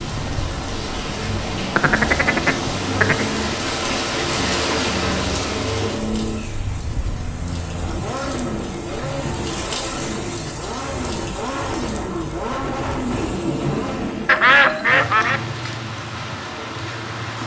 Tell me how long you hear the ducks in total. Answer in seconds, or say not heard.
3 s.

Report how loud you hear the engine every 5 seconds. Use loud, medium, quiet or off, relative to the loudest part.
loud, loud, loud, off.